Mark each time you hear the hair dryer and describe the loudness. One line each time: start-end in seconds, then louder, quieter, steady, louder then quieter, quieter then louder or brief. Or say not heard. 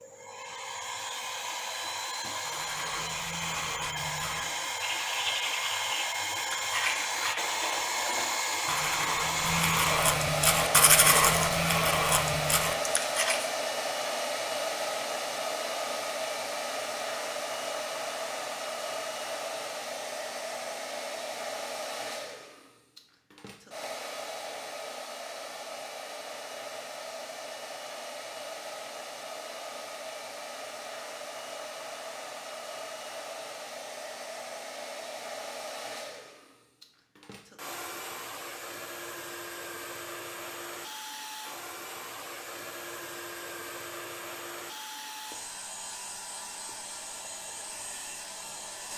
0.0-48.9 quieter.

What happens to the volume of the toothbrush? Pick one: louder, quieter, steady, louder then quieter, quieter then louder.
louder.